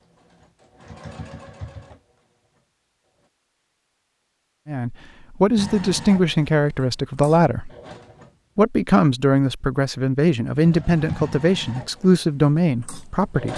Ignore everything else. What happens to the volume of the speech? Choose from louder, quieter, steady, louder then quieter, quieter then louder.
steady.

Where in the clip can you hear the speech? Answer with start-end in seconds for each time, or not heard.
4.7-7.7, 8.6-13.5.